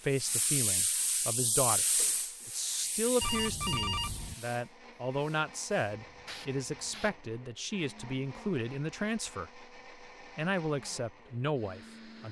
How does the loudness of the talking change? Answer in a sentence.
The volume of the talking stays about the same.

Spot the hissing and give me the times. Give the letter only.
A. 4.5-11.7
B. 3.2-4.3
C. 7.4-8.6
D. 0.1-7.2
D.